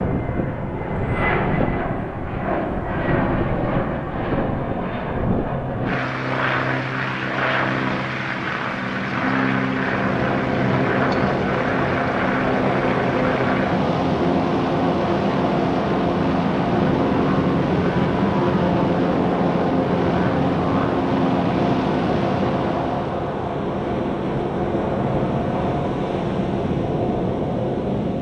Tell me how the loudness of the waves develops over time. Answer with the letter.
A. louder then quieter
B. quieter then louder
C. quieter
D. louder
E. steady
E.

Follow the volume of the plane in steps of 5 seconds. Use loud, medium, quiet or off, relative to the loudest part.
loud, loud, loud, loud, loud, off.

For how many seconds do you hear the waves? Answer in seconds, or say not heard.
18 s.